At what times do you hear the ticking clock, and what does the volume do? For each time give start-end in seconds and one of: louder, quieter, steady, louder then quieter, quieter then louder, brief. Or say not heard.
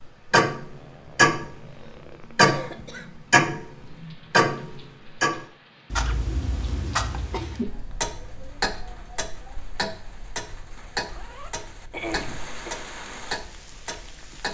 0.2-14.4 quieter.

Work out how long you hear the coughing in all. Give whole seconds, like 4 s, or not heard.
3 s.